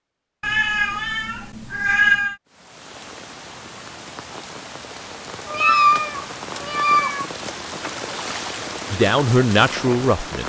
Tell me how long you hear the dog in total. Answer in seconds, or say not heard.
not heard.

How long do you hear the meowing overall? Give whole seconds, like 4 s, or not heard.
4 s.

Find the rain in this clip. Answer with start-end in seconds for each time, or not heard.
2.5-10.4.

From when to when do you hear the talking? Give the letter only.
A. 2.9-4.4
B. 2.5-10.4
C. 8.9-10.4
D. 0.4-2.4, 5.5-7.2
C.